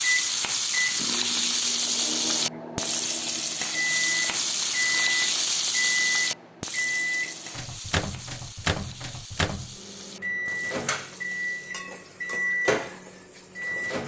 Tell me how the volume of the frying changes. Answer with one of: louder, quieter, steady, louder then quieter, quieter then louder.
quieter.